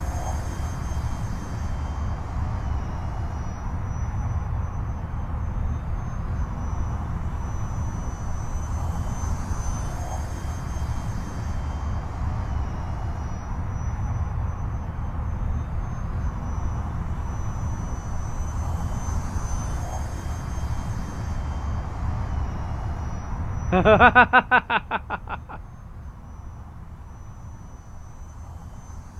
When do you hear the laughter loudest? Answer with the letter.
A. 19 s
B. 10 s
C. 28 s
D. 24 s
D.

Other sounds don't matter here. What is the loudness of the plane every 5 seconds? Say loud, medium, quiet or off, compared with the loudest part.
loud, loud, loud, loud, loud, quiet.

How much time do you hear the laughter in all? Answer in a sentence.
The laughter can be heard for 2 seconds in total.